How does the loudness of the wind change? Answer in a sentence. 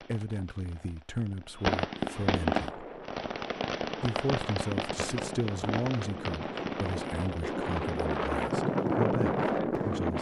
The volume of the wind goes up.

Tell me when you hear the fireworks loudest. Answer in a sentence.
The loudest moment of the fireworks is at 2 seconds.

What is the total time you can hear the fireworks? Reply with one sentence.
The fireworks can be heard for 10 seconds in total.